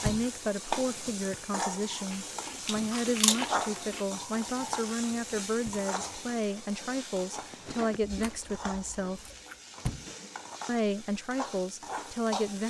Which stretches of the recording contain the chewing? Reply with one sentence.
You can hear the chewing from 2.1 to 4.0 s and from 8.0 to 9.7 s.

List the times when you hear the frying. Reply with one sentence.
The frying can be heard from 0.0 to 12.6 s.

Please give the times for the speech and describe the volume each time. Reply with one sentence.
The speech can be heard from 0.0 to 9.3 s, at a steady volume; and briefly from 10.7 to 12.6 s.